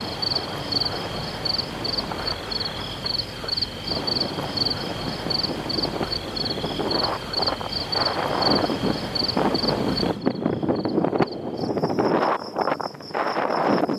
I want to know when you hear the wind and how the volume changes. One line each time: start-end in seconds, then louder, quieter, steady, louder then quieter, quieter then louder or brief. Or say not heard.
0.1-13.9 louder.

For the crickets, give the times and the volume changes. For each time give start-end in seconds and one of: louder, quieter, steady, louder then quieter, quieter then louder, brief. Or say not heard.
0.0-13.9 quieter.